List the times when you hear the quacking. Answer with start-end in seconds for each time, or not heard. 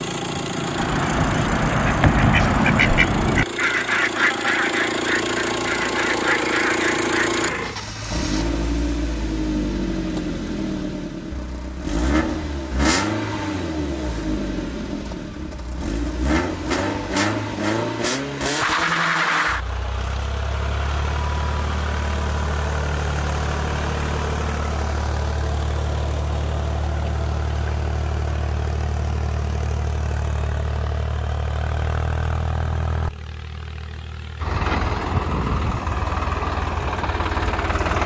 0.5-7.4.